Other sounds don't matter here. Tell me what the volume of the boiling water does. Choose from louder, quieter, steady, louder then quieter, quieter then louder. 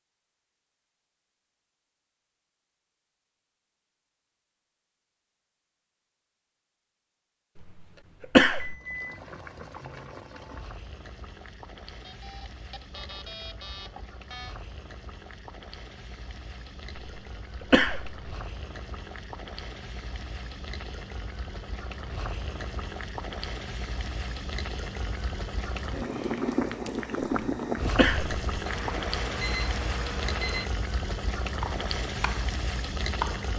louder.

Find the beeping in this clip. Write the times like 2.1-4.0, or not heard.
8.6-9.2, 12.0-14.6, 28.6-30.6.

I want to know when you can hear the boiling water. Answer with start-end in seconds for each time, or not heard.
8.7-33.5.